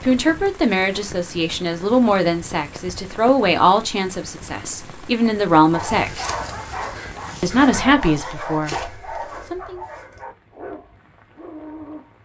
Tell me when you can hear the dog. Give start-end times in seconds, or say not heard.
5.7-12.1.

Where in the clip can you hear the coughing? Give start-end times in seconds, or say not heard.
not heard.